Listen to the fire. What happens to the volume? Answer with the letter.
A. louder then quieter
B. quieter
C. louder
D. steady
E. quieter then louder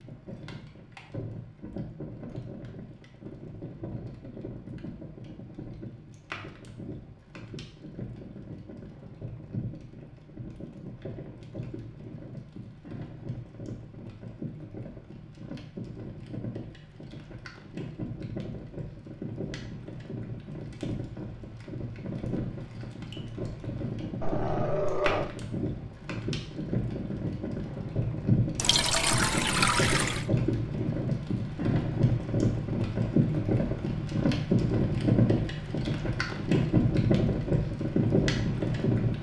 C.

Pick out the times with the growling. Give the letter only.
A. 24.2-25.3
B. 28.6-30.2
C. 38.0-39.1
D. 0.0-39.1
A.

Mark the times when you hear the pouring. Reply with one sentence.
You can hear the pouring from 28.6 to 30.2 s.